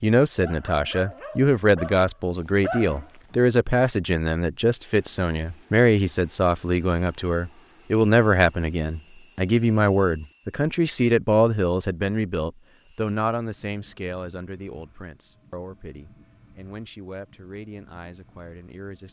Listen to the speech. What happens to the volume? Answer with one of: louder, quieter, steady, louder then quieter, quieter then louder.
quieter.